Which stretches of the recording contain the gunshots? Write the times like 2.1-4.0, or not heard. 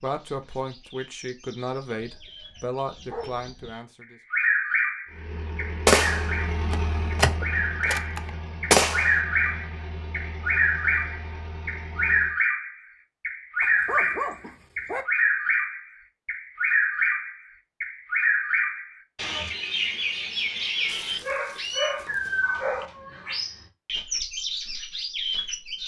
5.8-9.2.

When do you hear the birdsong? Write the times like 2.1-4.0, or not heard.
0.0-25.8.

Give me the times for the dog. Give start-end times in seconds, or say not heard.
2.0-3.8, 13.6-15.1, 20.9-22.9.